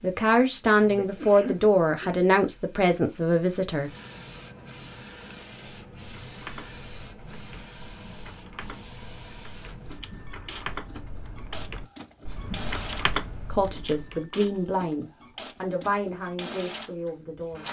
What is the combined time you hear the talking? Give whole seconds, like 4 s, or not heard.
8 s.